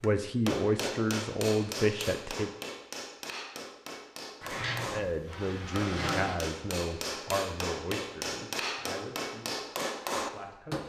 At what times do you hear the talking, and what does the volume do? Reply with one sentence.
The talking can be heard briefly from 0.0 to 2.5 s; and from 4.9 to 10.8 s, getting quieter.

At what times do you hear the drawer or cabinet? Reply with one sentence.
You can hear the drawer or cabinet from 4.4 to 6.5 s.